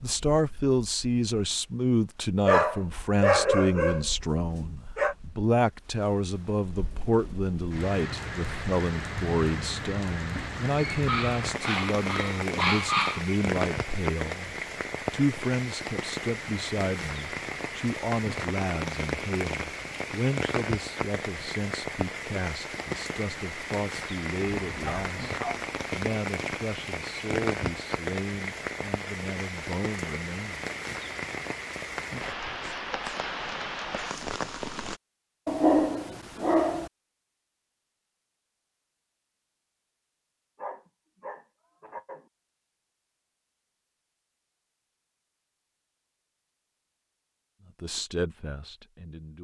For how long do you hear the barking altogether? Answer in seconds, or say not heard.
10 s.